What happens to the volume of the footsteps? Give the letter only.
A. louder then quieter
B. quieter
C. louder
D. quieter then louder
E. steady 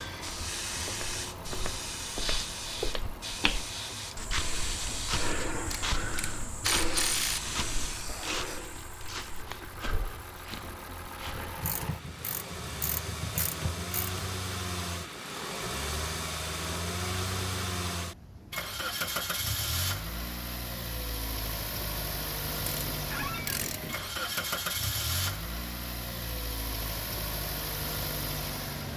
A.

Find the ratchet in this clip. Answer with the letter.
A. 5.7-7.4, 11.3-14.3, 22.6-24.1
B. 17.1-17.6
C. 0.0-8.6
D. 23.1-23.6
A.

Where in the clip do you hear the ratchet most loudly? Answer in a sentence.
The loudest moment of the ratchet is at 7 seconds.